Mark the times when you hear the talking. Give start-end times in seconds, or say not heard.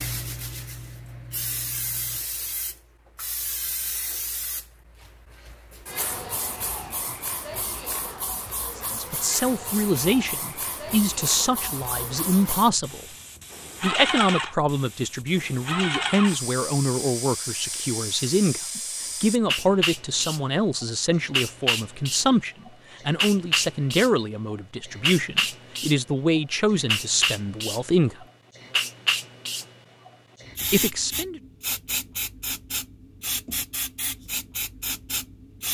8.8-13.1, 13.8-28.2, 30.7-31.4.